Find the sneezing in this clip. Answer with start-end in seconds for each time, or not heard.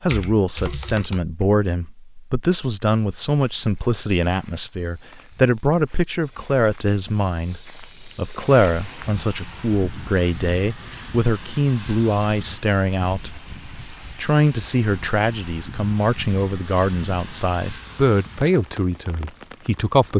not heard.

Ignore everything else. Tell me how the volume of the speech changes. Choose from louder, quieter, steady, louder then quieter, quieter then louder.
steady.